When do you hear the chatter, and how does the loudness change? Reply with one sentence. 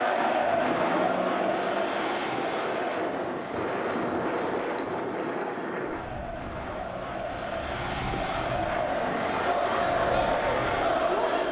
The chatter can be heard from 0.0 to 11.4 s, getting quieter then louder.